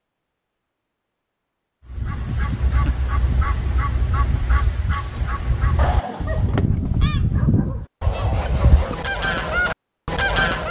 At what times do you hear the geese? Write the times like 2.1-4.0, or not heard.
1.9-10.6.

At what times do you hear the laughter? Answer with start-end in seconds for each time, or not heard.
2.2-3.0, 5.8-6.7.